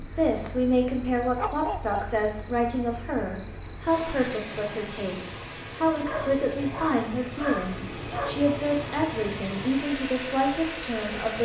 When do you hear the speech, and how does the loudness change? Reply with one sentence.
You can hear the speech from 0.0 to 11.4 s, at a steady volume.